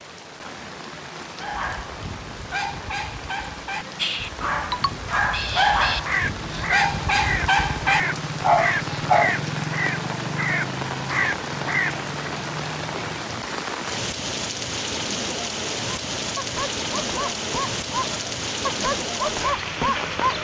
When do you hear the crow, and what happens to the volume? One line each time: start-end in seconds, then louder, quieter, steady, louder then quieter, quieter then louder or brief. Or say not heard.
4.0-12.1 steady.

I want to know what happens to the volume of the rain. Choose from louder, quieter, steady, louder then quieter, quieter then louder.
louder.